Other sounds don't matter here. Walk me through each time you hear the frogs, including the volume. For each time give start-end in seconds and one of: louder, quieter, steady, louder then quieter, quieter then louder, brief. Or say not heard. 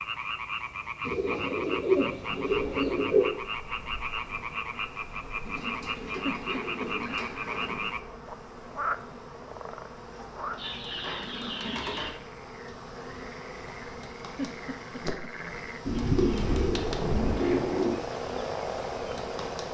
0.0-19.6 quieter then louder.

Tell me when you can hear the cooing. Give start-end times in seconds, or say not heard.
1.0-3.3, 5.4-7.9, 10.6-12.1, 15.8-18.0.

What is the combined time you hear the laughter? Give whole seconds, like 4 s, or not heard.
2 s.